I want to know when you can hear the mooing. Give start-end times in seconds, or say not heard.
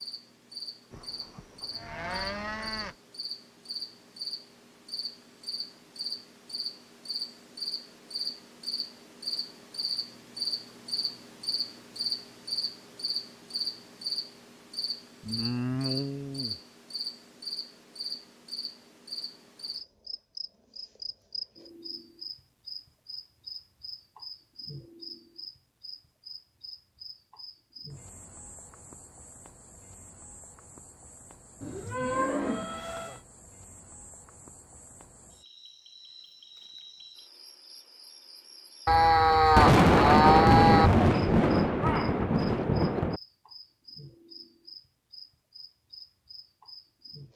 0.9-3.0, 15.2-16.6, 31.6-33.2, 38.9-40.9.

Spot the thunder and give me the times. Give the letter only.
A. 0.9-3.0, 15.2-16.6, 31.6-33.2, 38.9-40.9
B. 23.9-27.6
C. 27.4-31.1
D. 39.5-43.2
D.